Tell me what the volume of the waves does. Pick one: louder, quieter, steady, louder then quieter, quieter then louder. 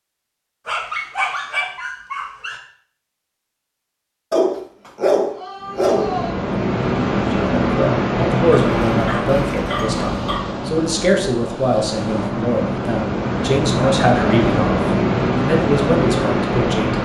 quieter then louder.